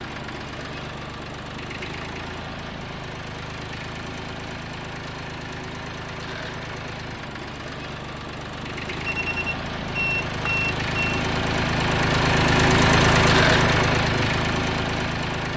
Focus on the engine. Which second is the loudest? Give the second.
13 s.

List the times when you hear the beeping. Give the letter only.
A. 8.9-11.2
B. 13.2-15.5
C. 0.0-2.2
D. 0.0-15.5
A.